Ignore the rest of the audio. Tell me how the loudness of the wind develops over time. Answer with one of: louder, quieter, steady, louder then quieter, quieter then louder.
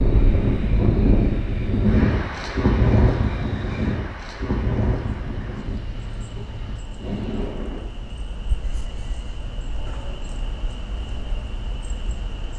quieter.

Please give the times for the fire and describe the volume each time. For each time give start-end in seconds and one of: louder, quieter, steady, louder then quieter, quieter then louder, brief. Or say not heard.
not heard.